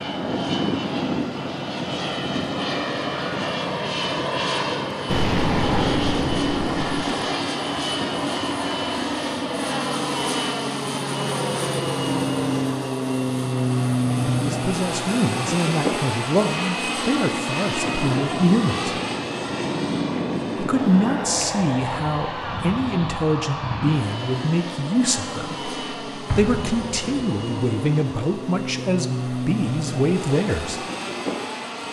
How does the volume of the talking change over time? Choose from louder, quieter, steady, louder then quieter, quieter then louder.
steady.